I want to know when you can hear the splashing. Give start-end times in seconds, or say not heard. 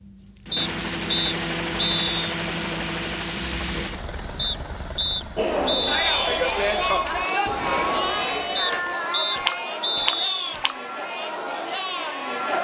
8.7-10.8.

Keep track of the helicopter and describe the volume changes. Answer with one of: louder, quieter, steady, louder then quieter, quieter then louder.
quieter.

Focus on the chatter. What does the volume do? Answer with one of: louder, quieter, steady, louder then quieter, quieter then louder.
quieter.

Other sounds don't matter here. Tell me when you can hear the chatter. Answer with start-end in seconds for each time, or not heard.
5.3-12.5.